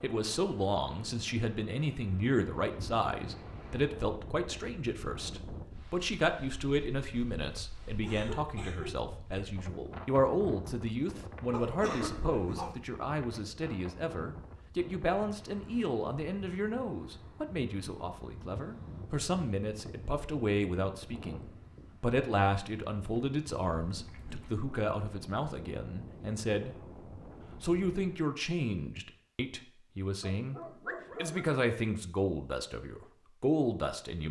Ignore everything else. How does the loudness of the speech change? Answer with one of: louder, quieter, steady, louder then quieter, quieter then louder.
steady.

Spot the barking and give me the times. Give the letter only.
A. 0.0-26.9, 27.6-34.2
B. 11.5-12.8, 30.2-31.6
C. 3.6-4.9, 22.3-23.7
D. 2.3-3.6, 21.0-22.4
B.